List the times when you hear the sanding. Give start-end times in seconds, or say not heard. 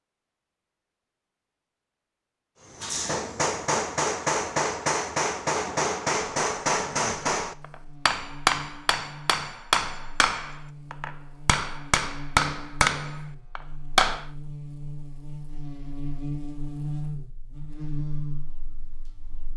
not heard.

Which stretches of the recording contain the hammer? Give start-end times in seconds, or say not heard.
2.8-14.2.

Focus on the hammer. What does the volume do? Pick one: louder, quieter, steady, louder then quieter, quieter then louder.
steady.